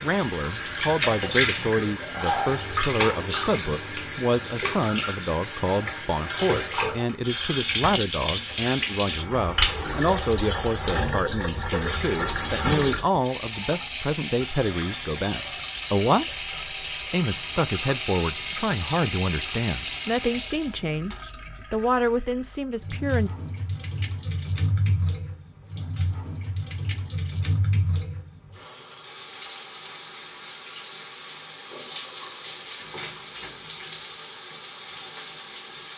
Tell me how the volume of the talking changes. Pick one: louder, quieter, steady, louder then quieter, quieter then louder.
steady.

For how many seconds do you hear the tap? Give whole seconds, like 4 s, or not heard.
36 s.